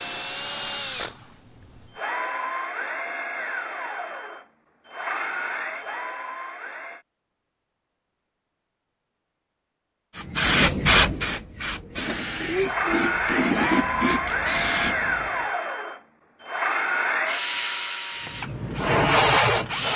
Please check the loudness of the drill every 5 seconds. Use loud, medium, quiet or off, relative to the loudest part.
medium, medium, loud, loud.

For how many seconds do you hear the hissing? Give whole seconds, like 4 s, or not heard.
6 s.